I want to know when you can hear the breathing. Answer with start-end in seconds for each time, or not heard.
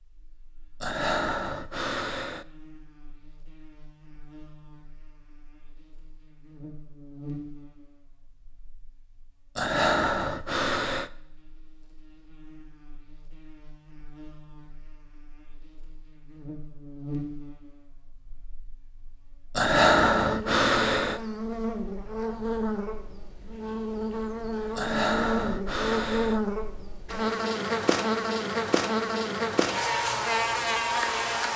0.8-2.5, 9.6-11.1, 19.6-21.2, 24.8-26.4.